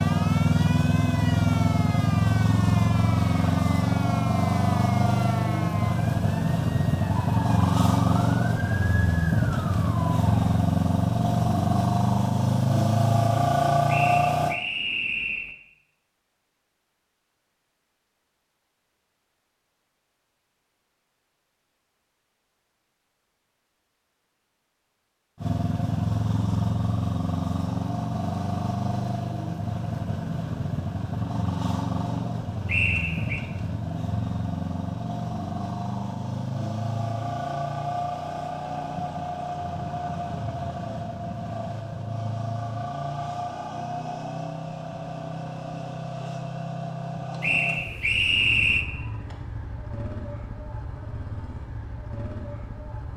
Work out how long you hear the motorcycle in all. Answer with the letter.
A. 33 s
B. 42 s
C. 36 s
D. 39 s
B.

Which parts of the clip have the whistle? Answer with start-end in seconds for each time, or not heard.
13.8-15.6, 32.6-33.4, 47.4-48.9.